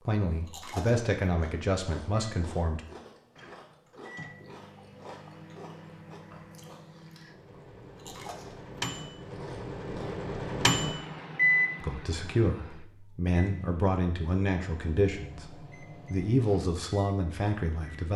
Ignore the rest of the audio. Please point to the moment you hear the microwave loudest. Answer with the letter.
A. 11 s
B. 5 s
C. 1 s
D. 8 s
A.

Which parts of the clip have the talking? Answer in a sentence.
You can hear the talking from 0.1 to 2.8 s and from 11.8 to 18.1 s.